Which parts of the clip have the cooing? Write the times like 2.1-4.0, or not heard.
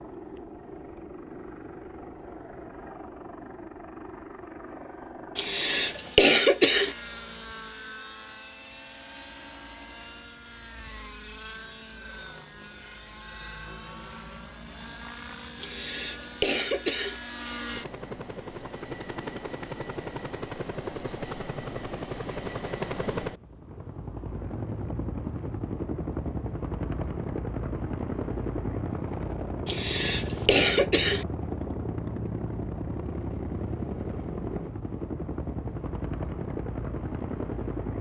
not heard.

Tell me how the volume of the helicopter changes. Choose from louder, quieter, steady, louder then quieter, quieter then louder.
louder.